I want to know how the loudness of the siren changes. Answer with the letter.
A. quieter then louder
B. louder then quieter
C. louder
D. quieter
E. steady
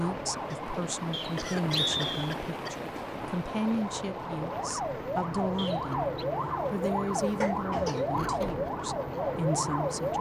C.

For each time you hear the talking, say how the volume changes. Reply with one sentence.
You can hear the talking from 0.0 to 10.1 s, at a steady volume.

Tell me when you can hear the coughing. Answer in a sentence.
You can hear the coughing from 0.5 to 2.8 s and from 7.4 to 8.1 s.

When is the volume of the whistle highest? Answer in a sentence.
The volume of the whistle peaks at 2 seconds.